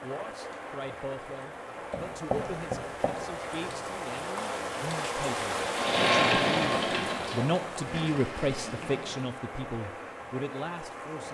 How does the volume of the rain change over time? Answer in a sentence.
The loudness of the rain goes up, then down.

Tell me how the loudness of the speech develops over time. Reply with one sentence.
The volume of the speech goes up, then down.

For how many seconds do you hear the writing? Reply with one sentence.
The writing can be heard for 2 seconds in total.